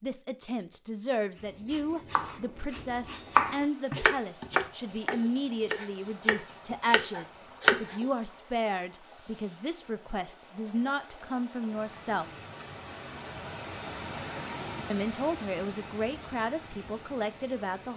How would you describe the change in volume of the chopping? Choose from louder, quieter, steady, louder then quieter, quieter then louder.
louder then quieter.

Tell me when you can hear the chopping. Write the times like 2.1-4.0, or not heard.
1.7-8.1.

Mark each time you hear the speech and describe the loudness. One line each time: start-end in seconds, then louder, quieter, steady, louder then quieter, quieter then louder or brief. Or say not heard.
0.0-12.2 steady
14.9-17.9 brief.